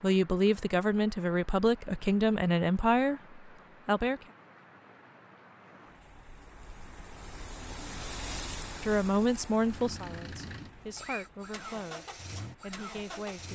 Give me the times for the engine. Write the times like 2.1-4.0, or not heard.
9.6-13.5.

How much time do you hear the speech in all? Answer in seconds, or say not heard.
9 s.